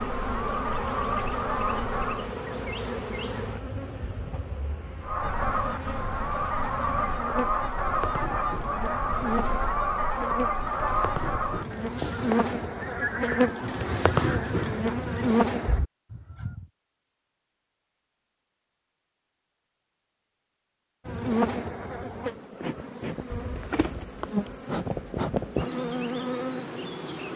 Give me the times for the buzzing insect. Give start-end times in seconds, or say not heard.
0.0-15.8, 21.1-27.3.